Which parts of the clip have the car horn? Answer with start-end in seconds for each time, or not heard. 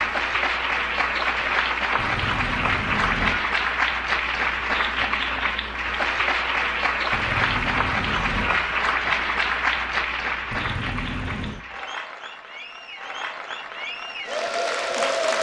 1.9-3.5, 7.1-8.8, 10.5-11.7.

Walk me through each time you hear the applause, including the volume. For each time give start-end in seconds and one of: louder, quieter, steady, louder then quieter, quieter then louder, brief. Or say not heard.
0.0-15.3 quieter.